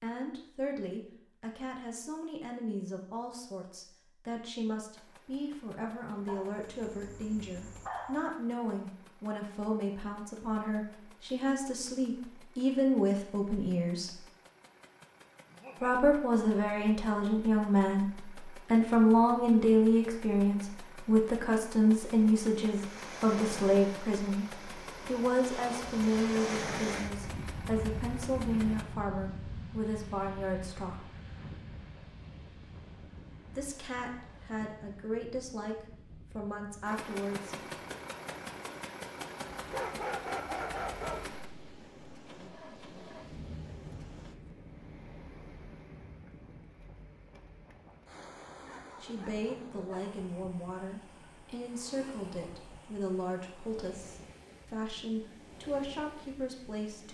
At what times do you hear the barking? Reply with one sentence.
You can hear the barking from 6.2 to 8.2 s, from 15.5 to 16.0 s, from 39.6 to 41.3 s and from 48.6 to 50.0 s.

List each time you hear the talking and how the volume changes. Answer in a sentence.
The talking can be heard from 0.0 to 14.2 s, getting louder; from 15.8 to 31.1 s, getting quieter; from 33.5 to 37.5 s, at a steady volume; and from 49.0 to 57.1 s, at a steady volume.